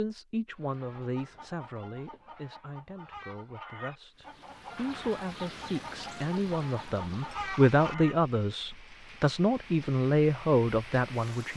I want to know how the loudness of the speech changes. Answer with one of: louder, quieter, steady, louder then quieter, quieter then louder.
quieter then louder.